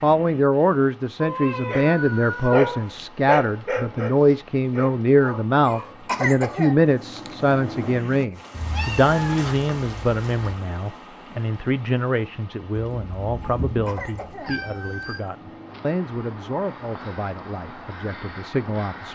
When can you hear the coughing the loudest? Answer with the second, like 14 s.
6 s.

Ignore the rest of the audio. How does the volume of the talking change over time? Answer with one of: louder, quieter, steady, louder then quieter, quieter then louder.
quieter.